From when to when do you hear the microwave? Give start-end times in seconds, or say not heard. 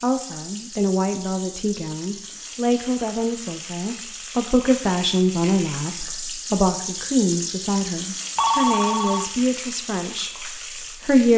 not heard.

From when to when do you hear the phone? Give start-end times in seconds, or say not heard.
8.3-9.3.